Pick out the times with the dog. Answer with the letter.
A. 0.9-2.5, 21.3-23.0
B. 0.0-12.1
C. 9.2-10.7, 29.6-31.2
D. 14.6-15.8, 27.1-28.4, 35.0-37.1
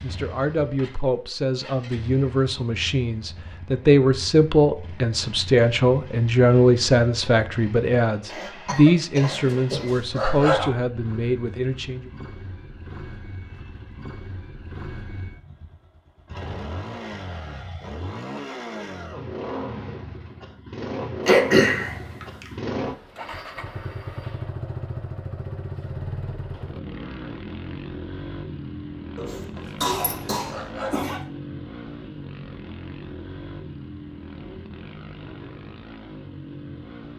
C.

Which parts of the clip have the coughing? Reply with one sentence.
You can hear the coughing from 8.7 to 9.9 s, from 21.2 to 22.4 s and from 29.1 to 31.2 s.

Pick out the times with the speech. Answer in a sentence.
The speech can be heard from 0.0 to 12.1 s.